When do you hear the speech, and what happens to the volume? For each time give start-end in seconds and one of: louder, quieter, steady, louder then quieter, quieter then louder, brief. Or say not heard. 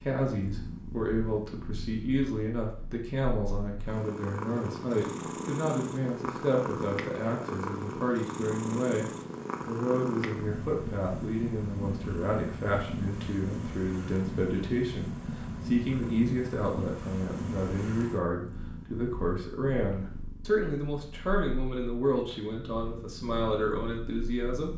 0.0-24.7 steady.